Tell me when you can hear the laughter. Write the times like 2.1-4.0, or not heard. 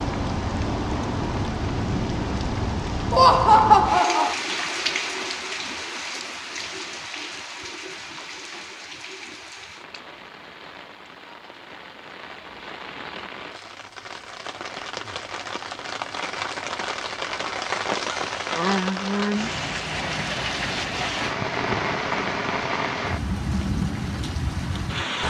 3.1-4.3.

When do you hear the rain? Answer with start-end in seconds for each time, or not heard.
0.0-25.2.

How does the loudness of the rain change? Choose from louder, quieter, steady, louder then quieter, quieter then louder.
quieter then louder.